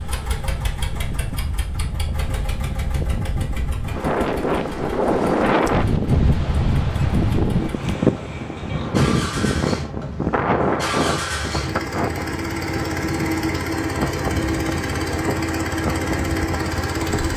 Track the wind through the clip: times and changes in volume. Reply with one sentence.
The wind can be heard from 0.0 to 17.3 s, getting louder then quieter.